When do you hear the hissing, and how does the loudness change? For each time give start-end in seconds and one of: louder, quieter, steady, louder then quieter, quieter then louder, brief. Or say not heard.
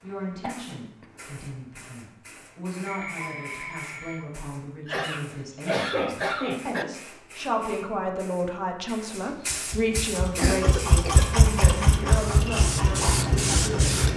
0.0-14.1 louder.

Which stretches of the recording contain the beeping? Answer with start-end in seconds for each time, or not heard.
2.9-4.2.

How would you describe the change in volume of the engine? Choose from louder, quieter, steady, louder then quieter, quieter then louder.
louder then quieter.